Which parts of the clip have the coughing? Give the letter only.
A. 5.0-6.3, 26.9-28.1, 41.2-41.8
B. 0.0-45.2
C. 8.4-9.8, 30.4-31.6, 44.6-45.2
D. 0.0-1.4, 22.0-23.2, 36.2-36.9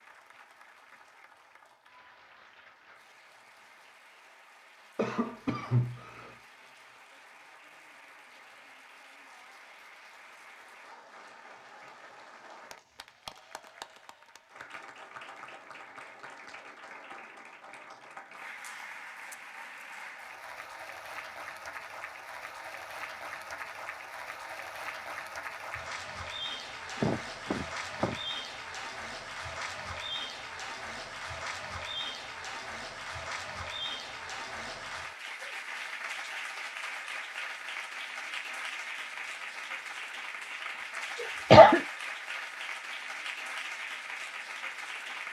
A.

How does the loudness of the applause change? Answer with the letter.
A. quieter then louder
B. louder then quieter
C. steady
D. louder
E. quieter
D.